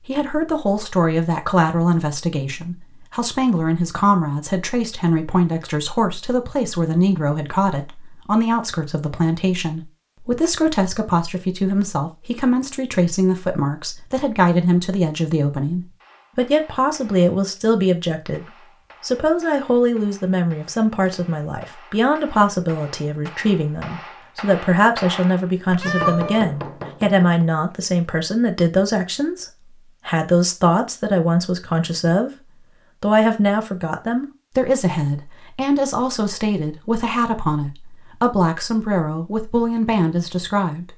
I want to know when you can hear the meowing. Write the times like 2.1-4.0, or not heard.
25.6-26.5.